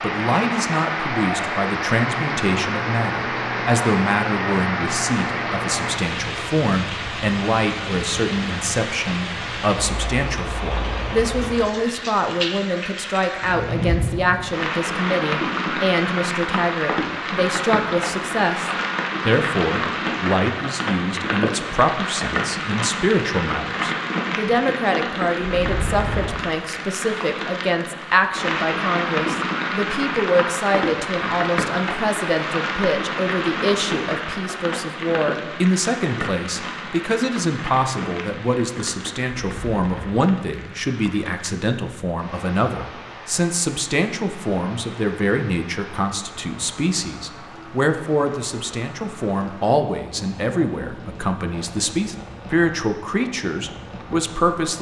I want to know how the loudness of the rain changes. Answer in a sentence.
The volume of the rain goes down.